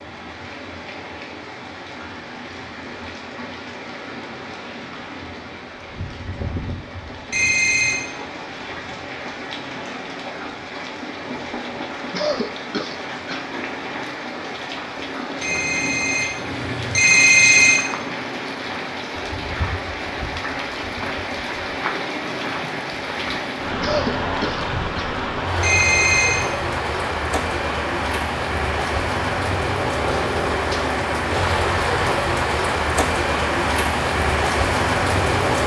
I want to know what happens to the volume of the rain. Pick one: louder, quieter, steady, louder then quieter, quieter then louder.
louder.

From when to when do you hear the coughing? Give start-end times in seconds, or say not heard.
12.1-13.4, 23.8-25.1.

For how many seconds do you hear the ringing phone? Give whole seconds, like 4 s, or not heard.
4 s.